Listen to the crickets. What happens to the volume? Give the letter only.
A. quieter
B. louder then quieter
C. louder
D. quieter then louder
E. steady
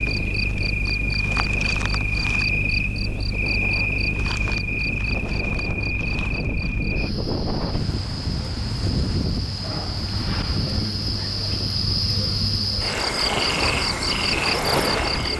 D.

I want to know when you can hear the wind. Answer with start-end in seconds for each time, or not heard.
0.0-15.3.